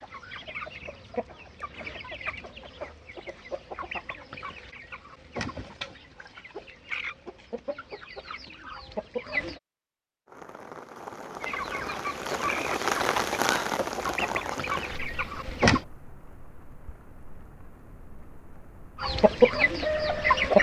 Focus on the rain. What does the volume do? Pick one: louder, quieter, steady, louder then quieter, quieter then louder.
louder then quieter.